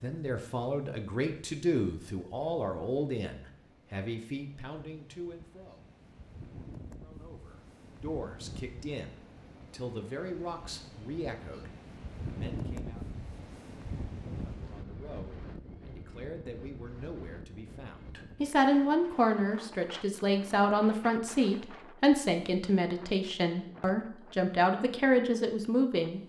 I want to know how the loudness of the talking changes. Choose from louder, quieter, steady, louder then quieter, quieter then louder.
quieter then louder.